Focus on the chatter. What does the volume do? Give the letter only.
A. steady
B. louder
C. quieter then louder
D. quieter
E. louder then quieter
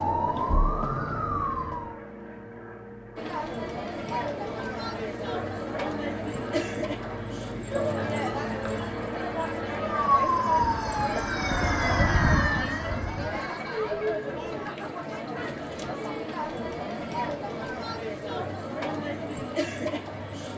A.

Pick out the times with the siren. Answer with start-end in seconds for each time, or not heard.
0.0-2.0, 9.8-13.4.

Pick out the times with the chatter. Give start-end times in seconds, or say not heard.
3.1-20.5.